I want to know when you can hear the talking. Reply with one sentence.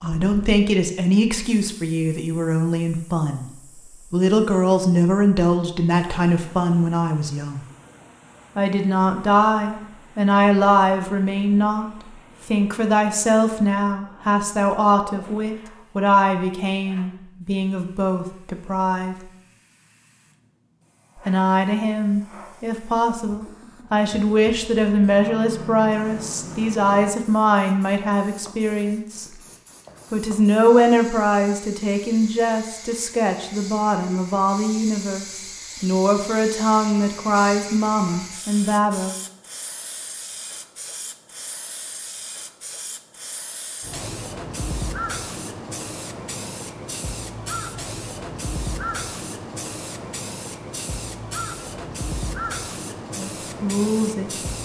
You can hear the talking from 0.0 to 7.7 s, from 8.6 to 19.1 s, from 21.2 to 29.2 s, from 30.1 to 39.1 s and from 53.1 to 54.6 s.